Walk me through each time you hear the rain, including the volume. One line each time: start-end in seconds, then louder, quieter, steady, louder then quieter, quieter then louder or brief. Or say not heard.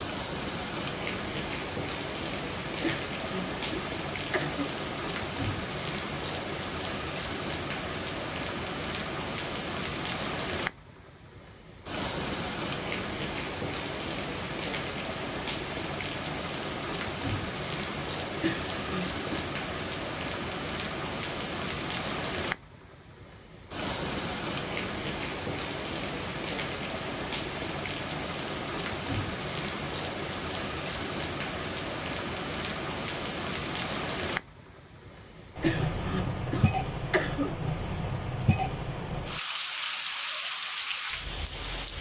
0.0-41.9 steady.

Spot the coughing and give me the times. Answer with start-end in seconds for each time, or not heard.
2.8-4.7, 18.4-19.4, 35.6-37.6.